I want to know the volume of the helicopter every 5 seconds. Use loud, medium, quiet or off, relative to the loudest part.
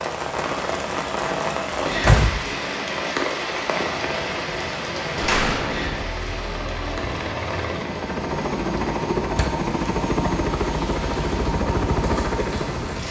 medium, loud, loud.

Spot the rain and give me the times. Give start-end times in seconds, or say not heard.
0.0-13.0.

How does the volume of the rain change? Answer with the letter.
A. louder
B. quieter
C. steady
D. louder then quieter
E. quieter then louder
B.